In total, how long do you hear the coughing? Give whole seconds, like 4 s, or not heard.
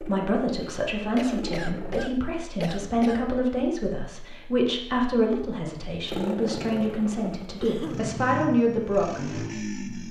3 s.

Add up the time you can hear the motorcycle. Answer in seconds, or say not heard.
6 s.